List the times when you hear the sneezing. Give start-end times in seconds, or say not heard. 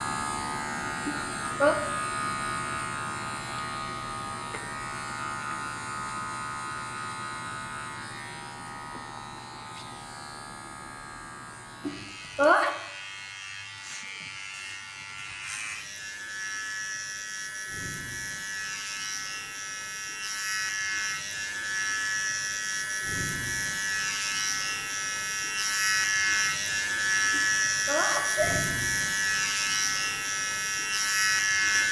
1.1-1.8, 11.8-12.8, 27.3-28.6.